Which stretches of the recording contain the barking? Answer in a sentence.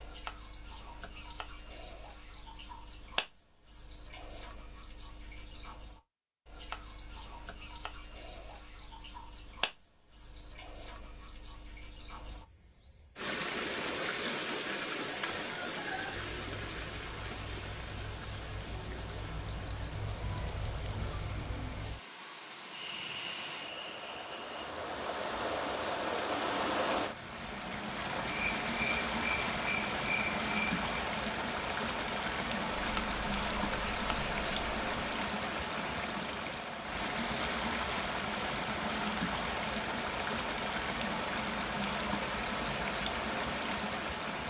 You can't hear the barking here.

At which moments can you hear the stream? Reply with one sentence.
The stream can be heard from 13.2 to 44.4 s.